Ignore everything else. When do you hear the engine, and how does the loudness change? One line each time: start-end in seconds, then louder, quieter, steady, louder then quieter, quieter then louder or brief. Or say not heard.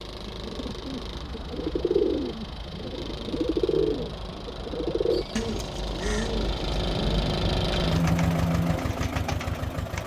0.0-10.0 louder.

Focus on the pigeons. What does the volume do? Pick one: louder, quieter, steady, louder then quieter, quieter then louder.
quieter.